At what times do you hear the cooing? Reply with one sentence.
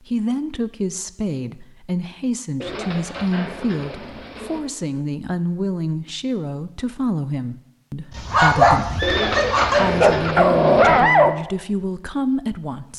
The cooing can be heard from 2.6 to 4.6 s and from 9.0 to 11.1 s.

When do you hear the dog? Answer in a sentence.
You can hear the dog from 8.1 to 11.3 s.